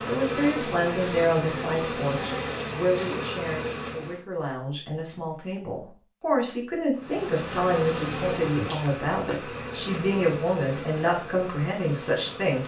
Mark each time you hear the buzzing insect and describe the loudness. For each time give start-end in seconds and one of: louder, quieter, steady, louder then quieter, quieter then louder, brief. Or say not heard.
0.0-4.2 steady
7.0-12.6 quieter.